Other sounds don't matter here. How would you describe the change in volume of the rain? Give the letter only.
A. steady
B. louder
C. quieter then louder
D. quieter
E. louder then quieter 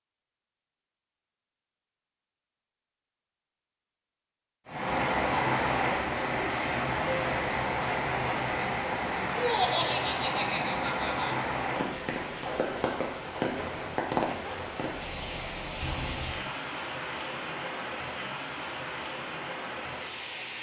D.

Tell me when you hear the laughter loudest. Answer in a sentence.
The loudest moment of the laughter is at 10 seconds.